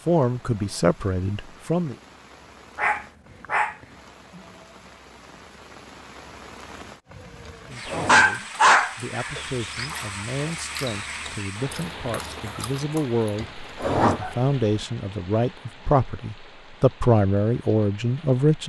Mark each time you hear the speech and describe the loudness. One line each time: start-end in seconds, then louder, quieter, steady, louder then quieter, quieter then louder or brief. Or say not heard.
0.0-1.9 brief
7.7-18.6 louder.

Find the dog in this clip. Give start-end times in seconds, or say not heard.
2.8-3.8, 8.1-9.7, 13.6-14.8.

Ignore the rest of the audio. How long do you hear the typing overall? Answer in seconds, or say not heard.
not heard.